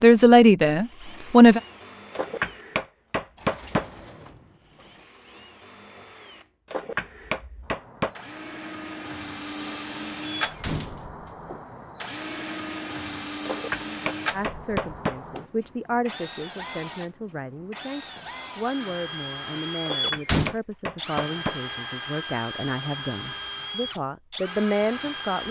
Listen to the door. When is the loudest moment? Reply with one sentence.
The volume of the door peaks at 20 seconds.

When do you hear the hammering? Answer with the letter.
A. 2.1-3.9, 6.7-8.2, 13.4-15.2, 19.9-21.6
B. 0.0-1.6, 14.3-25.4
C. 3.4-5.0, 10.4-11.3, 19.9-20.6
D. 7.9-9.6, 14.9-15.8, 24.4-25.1
A.